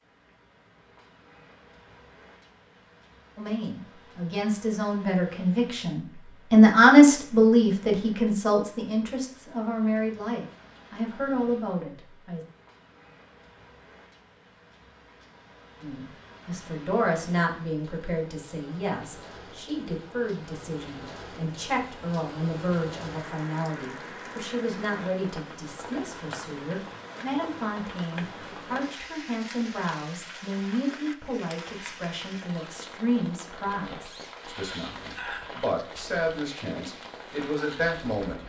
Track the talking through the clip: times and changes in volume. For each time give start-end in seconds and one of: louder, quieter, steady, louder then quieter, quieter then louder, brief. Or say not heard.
3.4-12.4 louder then quieter
15.8-38.4 steady.